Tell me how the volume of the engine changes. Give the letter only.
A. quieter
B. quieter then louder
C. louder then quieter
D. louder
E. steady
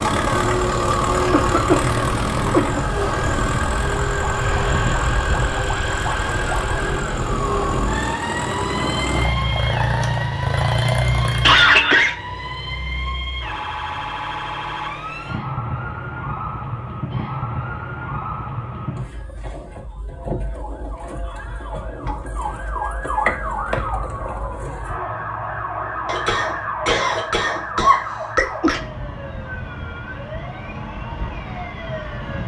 B.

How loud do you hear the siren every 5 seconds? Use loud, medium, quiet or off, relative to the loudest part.
loud, loud, loud, loud, loud, loud, medium.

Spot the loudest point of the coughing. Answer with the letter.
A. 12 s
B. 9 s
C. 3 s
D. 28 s
A.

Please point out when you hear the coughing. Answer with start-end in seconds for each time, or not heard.
0.9-2.9, 11.4-12.2, 26.1-28.8.